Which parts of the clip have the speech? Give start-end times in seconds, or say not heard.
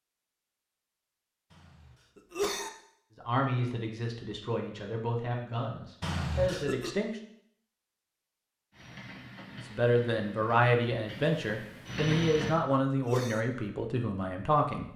3.1-7.2, 9.7-14.9.